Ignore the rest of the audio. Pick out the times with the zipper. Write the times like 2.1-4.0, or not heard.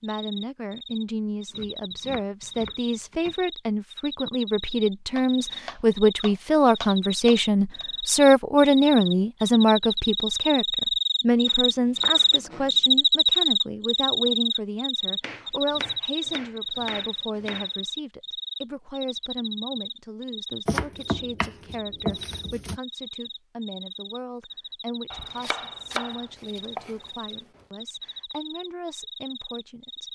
not heard.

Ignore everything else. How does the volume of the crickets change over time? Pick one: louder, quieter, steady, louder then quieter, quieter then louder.
louder then quieter.